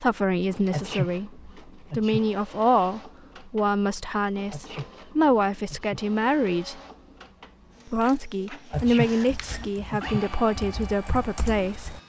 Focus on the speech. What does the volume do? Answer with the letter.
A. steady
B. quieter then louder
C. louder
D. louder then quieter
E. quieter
A.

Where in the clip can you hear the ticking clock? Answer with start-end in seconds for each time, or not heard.
not heard.